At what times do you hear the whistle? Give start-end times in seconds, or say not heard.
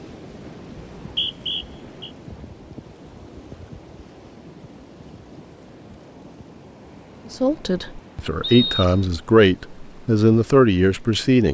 0.8-2.1, 8.4-9.1.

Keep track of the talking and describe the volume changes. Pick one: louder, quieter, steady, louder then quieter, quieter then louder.
louder.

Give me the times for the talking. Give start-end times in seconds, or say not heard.
7.3-11.4.